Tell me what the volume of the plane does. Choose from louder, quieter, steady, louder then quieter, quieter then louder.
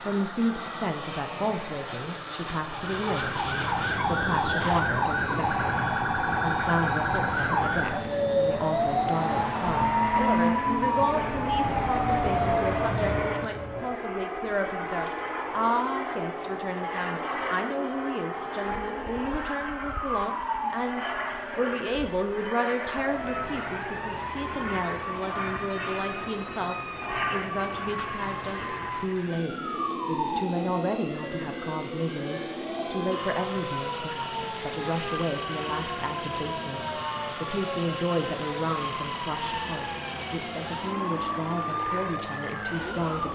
steady.